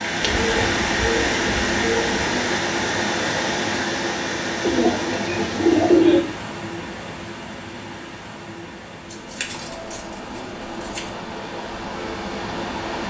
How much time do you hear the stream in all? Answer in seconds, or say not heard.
13 s.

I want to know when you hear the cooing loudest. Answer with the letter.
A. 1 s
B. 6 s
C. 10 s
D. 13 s
B.